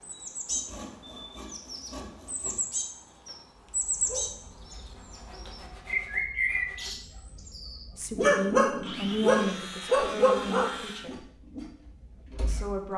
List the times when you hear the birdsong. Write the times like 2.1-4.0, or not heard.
0.0-7.8.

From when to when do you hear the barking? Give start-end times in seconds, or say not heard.
3.8-12.8.